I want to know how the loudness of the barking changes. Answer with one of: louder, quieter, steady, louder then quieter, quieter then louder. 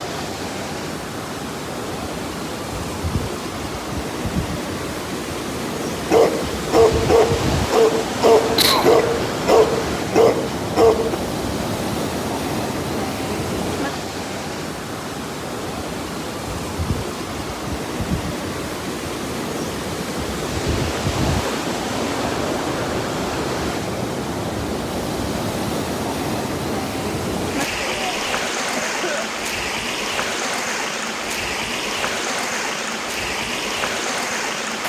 steady.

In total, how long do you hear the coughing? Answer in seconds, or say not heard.
2 s.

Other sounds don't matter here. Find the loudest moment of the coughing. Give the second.
9 s.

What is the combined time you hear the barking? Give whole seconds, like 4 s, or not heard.
5 s.